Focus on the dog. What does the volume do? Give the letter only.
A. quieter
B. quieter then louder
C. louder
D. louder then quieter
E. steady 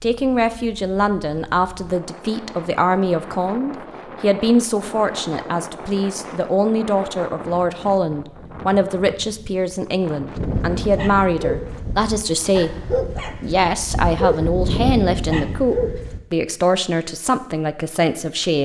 B.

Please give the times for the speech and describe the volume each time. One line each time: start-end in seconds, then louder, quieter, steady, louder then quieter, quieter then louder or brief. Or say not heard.
0.0-18.6 steady.